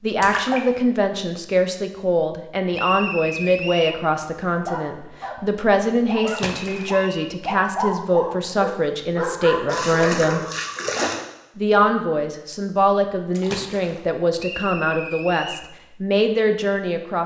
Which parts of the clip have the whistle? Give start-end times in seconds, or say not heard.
2.7-4.0, 6.0-7.3, 14.3-15.7.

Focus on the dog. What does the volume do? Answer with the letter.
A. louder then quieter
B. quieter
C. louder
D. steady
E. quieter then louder
C.